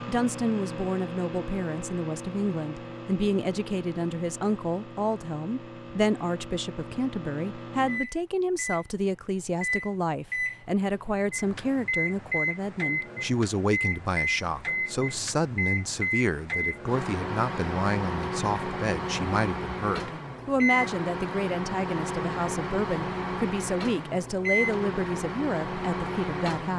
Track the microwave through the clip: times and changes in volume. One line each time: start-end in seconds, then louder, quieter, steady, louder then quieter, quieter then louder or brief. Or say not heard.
0.0-26.7 louder.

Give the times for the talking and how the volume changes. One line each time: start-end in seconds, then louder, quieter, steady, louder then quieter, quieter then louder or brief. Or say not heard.
0.1-26.7 steady.